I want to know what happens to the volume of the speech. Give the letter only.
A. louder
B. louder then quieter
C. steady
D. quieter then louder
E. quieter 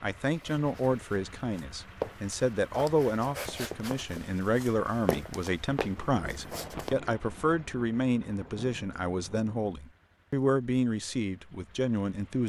C.